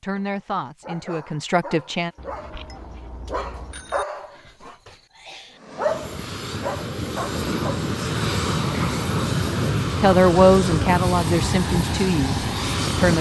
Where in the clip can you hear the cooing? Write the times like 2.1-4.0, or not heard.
not heard.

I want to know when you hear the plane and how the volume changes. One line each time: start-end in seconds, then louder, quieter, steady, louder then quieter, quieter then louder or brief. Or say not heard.
5.5-13.1 louder.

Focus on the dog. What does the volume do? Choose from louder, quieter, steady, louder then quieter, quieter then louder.
louder then quieter.